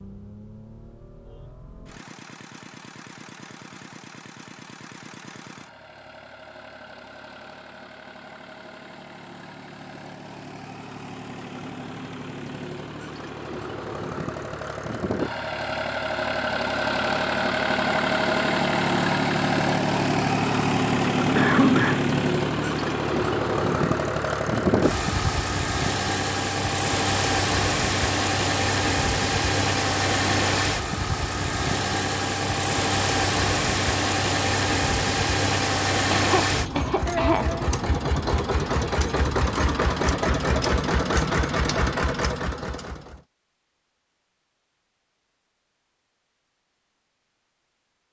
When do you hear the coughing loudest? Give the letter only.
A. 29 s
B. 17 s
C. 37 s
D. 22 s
D.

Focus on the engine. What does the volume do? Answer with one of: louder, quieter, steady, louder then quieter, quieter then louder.
louder.